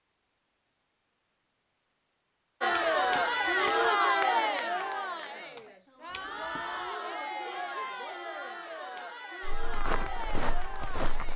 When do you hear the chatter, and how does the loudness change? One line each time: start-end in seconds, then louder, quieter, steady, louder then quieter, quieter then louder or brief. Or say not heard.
2.6-11.3 quieter.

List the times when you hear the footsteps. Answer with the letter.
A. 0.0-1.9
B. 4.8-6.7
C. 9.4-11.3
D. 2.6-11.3
C.